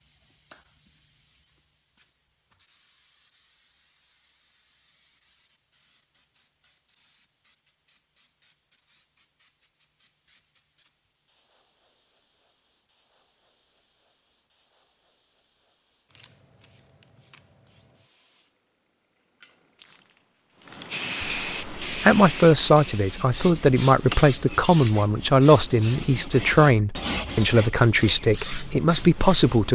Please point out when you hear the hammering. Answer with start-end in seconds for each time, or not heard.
not heard.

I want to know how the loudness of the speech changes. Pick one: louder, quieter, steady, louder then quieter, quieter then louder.
steady.